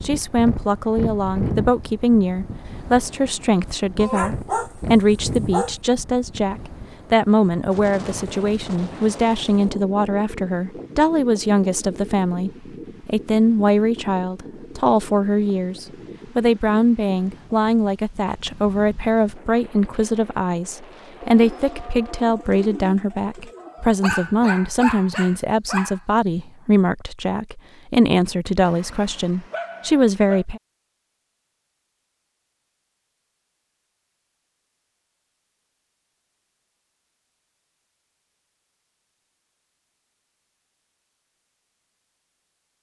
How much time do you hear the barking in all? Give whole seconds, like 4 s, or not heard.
6 s.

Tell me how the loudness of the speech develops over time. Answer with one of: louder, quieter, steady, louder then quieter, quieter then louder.
steady.